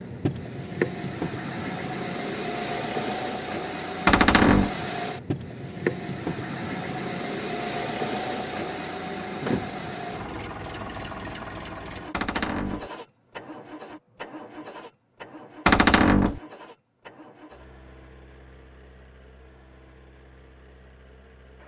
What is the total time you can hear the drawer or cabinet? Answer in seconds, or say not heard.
2 s.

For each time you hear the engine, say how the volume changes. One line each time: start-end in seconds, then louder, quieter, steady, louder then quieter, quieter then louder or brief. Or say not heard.
0.0-21.6 quieter.